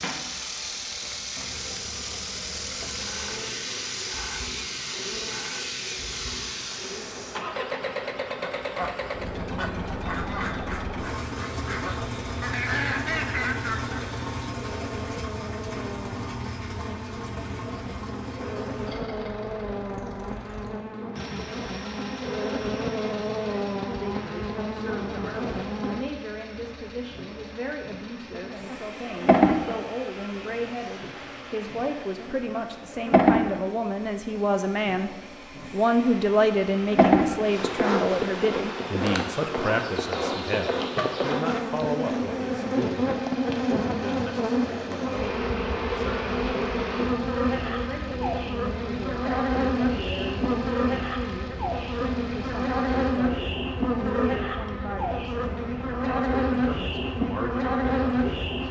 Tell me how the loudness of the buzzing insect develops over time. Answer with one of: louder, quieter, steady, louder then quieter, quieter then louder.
louder.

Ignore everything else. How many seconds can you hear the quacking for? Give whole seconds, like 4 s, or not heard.
6 s.